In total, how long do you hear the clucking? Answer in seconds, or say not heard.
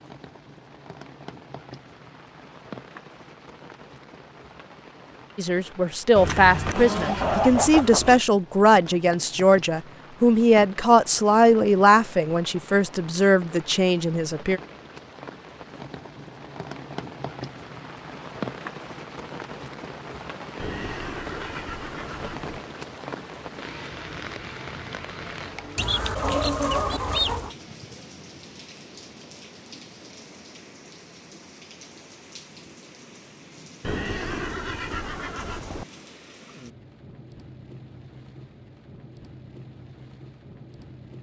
4 s.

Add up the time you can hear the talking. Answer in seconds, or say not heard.
9 s.